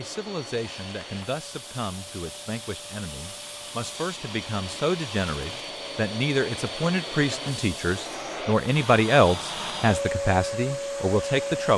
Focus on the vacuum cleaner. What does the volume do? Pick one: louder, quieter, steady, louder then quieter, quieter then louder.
louder.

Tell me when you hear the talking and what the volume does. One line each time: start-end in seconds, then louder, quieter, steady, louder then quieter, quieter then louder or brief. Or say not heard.
0.0-11.7 louder.